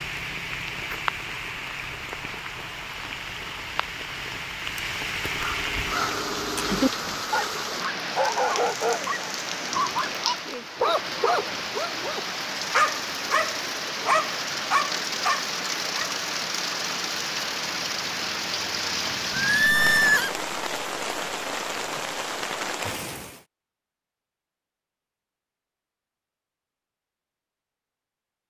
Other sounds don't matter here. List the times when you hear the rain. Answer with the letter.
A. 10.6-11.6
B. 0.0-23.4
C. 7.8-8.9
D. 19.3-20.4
B.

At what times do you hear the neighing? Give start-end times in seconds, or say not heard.
19.3-20.4.